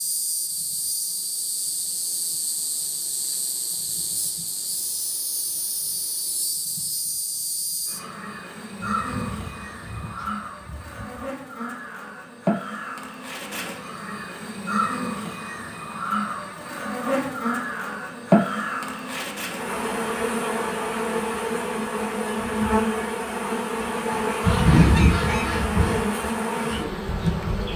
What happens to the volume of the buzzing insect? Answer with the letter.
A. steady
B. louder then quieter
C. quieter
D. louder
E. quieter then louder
D.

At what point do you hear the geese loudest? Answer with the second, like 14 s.
25 s.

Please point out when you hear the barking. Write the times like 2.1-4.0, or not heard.
not heard.